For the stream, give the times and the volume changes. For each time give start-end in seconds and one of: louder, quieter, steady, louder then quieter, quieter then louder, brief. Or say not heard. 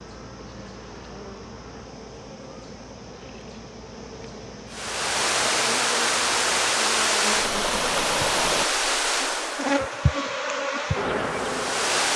4.7-12.1 quieter.